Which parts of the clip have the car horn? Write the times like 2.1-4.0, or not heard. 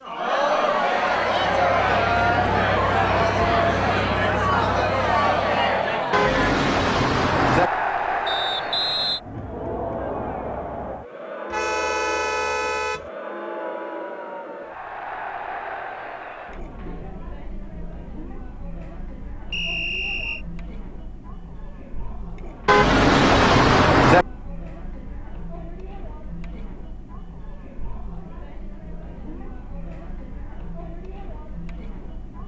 6.1-7.7, 11.5-13.1, 22.6-24.2.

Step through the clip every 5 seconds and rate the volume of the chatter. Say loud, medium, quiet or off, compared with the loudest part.
loud, loud, medium, quiet, quiet, quiet, quiet.